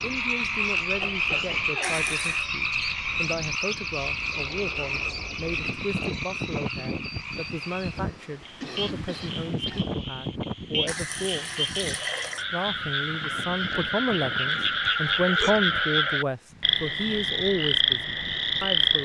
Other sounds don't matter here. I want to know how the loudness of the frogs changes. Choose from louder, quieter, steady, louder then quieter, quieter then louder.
quieter then louder.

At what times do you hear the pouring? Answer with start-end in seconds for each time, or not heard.
1.8-2.5, 10.8-12.4.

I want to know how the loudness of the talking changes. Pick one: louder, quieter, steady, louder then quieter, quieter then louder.
louder.